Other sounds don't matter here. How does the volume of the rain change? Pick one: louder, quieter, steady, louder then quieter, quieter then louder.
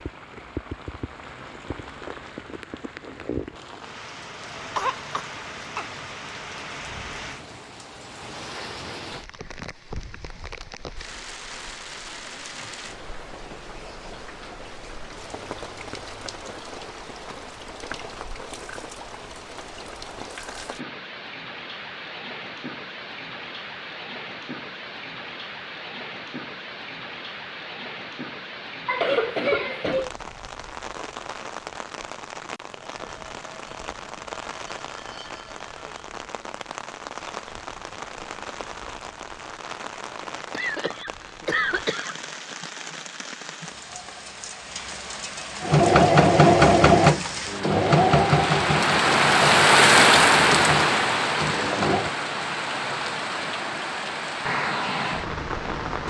louder.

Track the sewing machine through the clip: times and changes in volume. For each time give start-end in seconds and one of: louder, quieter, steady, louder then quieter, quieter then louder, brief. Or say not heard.
45.6-52.1 quieter.